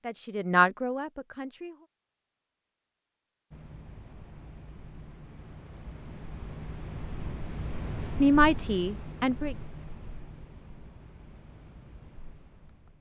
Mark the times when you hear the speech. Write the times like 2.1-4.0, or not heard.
0.0-1.9, 8.2-9.6.